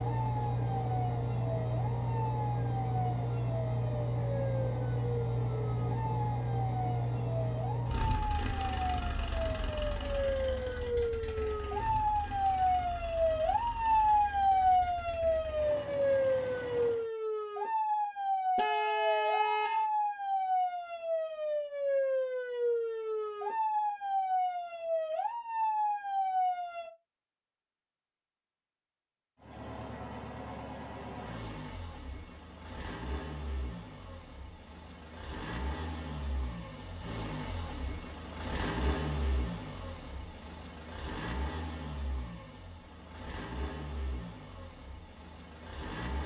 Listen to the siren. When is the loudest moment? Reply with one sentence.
The volume of the siren peaks at 14 seconds.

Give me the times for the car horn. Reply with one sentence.
The car horn can be heard from 18.6 to 19.9 s.